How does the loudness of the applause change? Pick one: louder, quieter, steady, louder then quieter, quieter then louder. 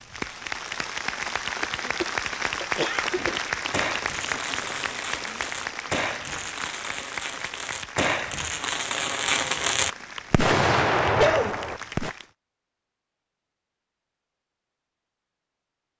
quieter.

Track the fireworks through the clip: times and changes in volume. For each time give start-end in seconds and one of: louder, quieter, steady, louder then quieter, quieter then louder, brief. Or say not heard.
3.1-12.1 louder.